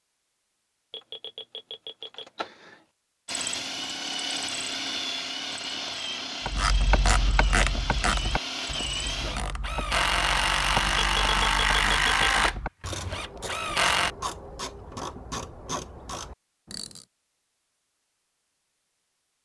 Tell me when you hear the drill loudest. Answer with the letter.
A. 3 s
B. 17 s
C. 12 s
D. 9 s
C.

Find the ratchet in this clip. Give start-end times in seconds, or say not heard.
6.5-17.1.